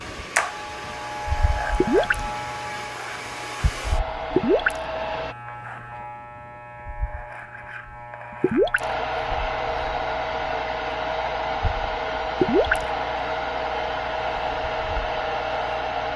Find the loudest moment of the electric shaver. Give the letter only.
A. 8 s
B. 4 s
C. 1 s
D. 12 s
C.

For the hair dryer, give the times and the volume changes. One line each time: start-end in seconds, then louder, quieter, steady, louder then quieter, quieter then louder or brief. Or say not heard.
0.0-5.3 louder
8.8-16.1 steady.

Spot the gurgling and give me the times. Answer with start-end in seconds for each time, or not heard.
1.8-2.2, 4.3-4.8, 8.4-8.8, 12.4-12.8.